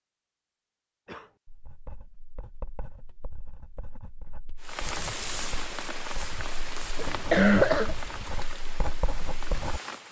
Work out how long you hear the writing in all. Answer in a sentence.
The writing can be heard for 8 seconds in total.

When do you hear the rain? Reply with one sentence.
You can hear the rain from 4.6 to 10.0 s.